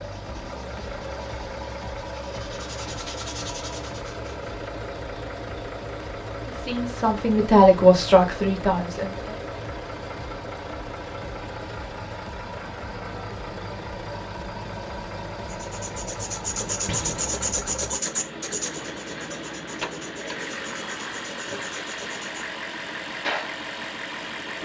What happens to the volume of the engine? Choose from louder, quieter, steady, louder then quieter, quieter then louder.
steady.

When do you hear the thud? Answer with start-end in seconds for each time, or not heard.
16.9-17.4.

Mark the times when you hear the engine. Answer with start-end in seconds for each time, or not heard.
0.0-24.6.